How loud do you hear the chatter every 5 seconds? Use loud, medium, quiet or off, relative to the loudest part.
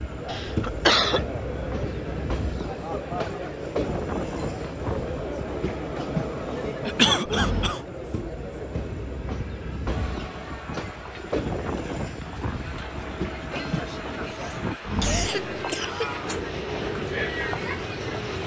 loud, loud, medium, loud.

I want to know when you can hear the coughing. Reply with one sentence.
You can hear the coughing from 0.2 to 1.2 s, from 6.8 to 7.8 s and from 13.5 to 16.1 s.